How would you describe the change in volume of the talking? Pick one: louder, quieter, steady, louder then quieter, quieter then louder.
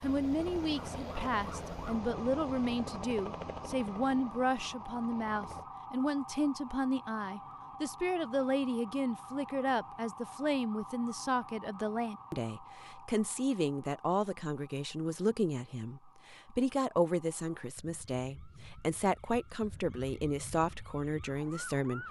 steady.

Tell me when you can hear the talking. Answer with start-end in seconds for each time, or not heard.
0.0-22.0.